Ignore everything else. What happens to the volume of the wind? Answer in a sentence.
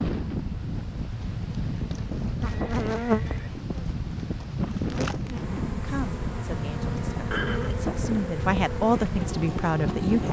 The volume of the wind stays about the same.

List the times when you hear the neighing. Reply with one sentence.
You can hear the neighing from 2.5 to 3.5 s and from 7.3 to 7.8 s.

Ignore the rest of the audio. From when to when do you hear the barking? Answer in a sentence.
You can't hear the barking here.